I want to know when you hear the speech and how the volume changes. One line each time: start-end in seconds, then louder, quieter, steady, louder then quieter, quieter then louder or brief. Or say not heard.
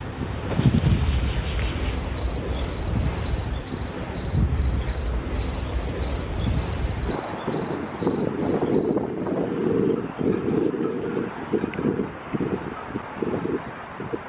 not heard.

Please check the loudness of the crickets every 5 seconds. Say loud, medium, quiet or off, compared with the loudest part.
loud, loud, off.